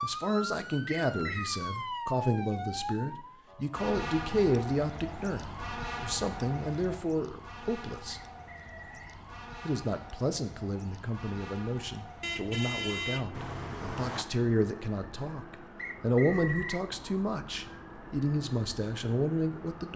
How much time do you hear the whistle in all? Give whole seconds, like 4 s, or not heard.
3 s.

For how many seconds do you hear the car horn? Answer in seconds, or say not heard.
2 s.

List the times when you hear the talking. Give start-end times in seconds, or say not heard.
0.0-8.2, 9.7-19.9.